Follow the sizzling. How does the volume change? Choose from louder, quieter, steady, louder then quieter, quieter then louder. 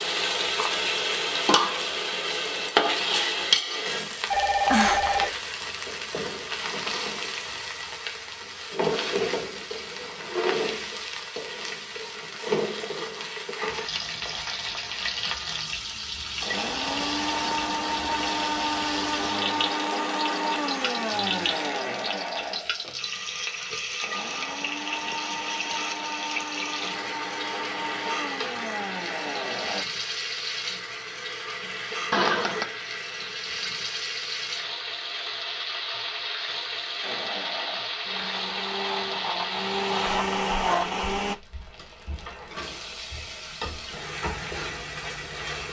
quieter.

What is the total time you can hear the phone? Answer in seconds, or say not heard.
2 s.